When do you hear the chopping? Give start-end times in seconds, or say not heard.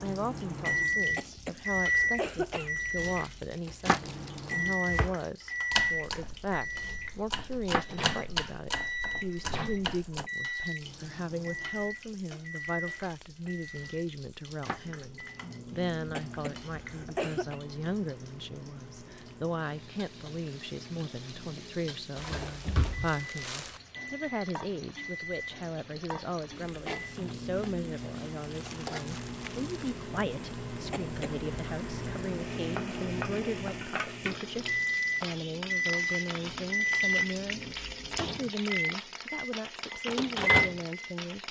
4.7-10.3.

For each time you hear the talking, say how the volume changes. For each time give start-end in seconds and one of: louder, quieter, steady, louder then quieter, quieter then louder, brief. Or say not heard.
0.0-41.4 steady.